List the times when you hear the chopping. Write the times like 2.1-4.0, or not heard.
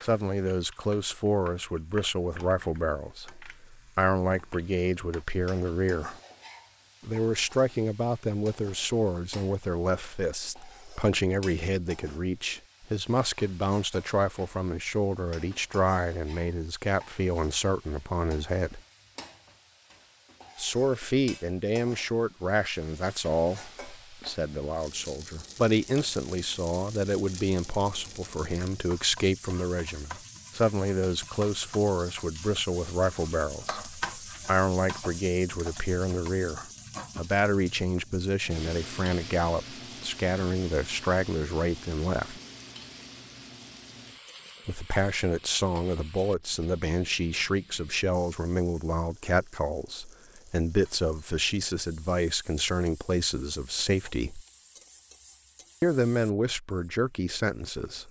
not heard.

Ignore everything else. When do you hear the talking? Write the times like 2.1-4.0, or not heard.
0.0-6.2, 7.0-18.8, 20.6-42.4, 44.6-54.5, 55.8-58.0.